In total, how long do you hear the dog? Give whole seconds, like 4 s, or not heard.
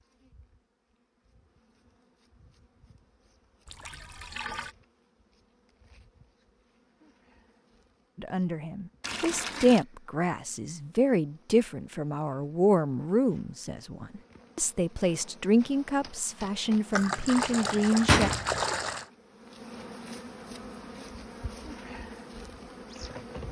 not heard.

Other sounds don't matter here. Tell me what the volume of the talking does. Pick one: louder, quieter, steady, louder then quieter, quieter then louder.
steady.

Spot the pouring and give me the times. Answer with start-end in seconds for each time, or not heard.
3.6-4.8, 9.0-9.8, 16.9-19.1.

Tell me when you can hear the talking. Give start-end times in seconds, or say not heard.
8.2-18.3.